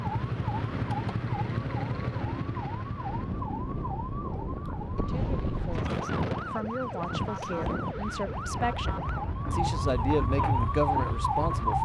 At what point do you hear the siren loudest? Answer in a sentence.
The loudest moment of the siren is at 11 seconds.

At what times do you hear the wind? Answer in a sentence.
You can hear the wind from 3.0 to 11.7 s.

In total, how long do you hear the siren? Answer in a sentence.
The siren can be heard for 12 seconds in total.